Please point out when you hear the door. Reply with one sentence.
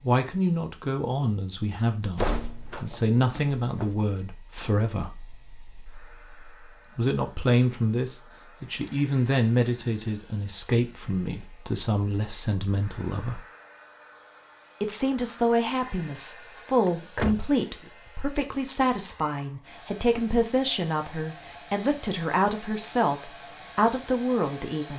You can hear the door from 2.1 to 3.9 s and from 16.9 to 17.9 s.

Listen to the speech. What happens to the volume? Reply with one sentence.
The volume of the speech stays about the same.